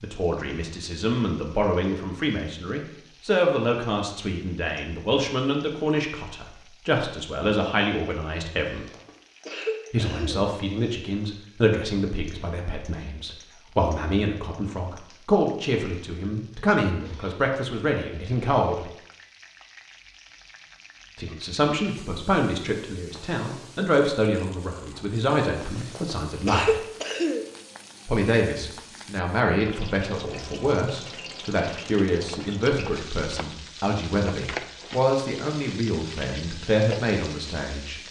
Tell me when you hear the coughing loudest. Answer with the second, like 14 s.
27 s.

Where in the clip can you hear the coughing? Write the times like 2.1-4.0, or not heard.
8.7-10.4, 23.1-23.6, 25.6-27.4.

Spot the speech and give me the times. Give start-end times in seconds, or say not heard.
0.0-8.8, 9.9-18.9, 21.1-26.8, 28.1-38.0.